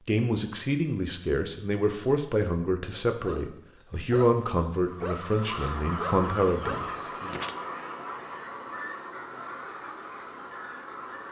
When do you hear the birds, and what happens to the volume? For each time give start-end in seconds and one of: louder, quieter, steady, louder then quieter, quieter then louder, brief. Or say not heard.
4.8-11.2 quieter.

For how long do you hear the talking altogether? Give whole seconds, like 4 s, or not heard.
7 s.